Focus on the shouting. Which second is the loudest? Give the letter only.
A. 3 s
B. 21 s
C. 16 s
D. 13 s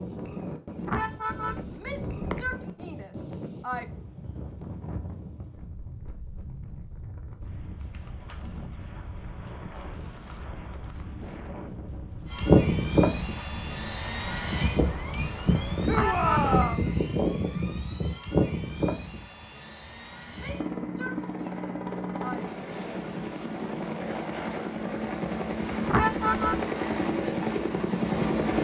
C.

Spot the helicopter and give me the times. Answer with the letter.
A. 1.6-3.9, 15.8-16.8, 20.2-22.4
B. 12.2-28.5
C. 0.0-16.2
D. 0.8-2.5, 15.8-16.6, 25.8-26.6
B.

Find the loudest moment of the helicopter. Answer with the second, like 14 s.
13 s.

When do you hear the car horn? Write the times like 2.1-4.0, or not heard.
0.8-2.5, 15.8-16.6, 25.8-26.6.